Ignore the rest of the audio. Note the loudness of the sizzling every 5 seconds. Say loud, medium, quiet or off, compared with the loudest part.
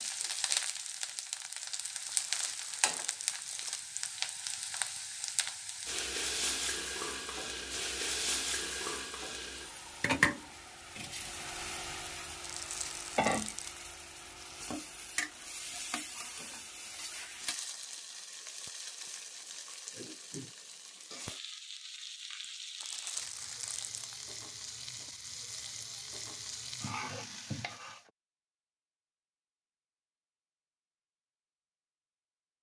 loud, loud, loud, medium, medium, medium, off.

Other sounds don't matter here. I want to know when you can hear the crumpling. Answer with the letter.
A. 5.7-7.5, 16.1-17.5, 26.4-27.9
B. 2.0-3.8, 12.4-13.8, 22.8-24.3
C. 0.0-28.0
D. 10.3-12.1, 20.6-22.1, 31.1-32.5
B.